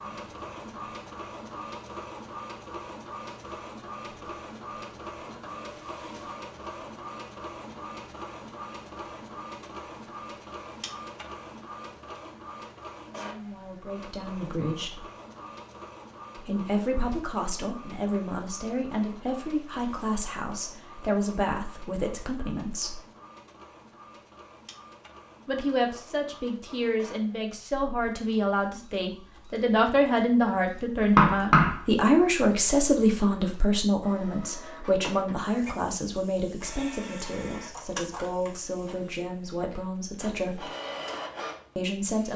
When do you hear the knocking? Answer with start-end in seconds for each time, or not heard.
31.0-31.8.